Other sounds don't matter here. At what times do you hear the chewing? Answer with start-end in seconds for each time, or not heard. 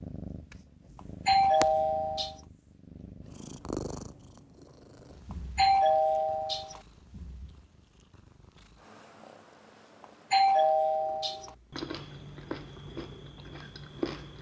11.7-14.3.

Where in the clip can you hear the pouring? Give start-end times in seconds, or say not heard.
not heard.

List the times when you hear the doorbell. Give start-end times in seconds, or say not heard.
1.2-2.4, 5.5-6.8, 10.3-11.5.